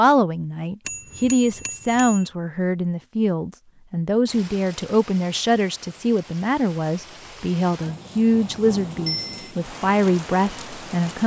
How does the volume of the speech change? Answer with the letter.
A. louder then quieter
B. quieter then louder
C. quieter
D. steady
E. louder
D.